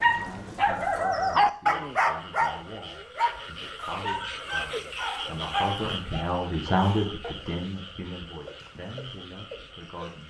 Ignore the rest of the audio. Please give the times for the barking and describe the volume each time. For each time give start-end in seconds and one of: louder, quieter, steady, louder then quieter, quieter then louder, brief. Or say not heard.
0.0-7.3 quieter.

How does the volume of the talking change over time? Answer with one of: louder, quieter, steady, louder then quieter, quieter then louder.
louder then quieter.